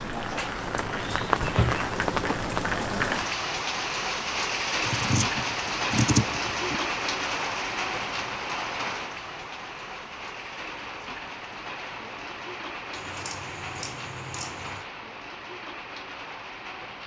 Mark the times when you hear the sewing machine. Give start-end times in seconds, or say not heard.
not heard.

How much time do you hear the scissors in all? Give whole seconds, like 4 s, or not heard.
4 s.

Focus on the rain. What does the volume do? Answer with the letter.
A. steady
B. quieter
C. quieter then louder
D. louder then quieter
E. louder
B.